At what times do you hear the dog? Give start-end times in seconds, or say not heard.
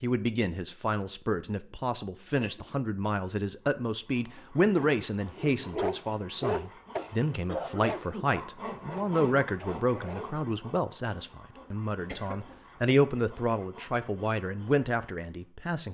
4.8-10.3.